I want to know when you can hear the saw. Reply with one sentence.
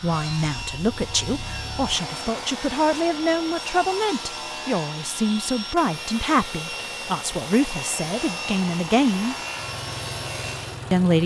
You can hear the saw from 0.0 to 10.8 s.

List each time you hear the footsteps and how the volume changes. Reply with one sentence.
The footsteps can't be heard in this clip.